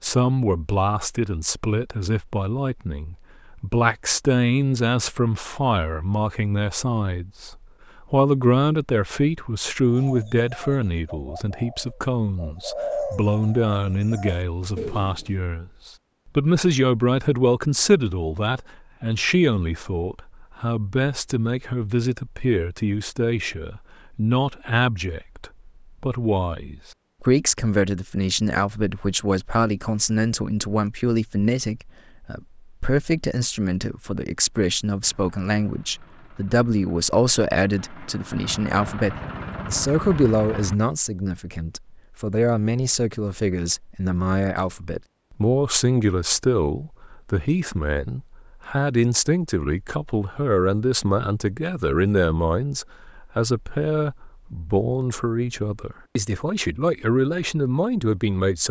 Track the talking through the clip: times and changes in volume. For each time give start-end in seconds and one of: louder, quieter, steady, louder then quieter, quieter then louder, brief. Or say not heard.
0.0-58.6 steady.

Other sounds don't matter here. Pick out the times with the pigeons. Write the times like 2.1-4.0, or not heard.
9.9-15.4.